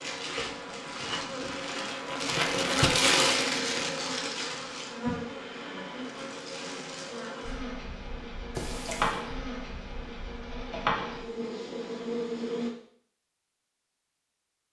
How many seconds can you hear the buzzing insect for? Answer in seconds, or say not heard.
13 s.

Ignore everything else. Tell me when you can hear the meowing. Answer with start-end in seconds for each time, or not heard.
8.6-9.2.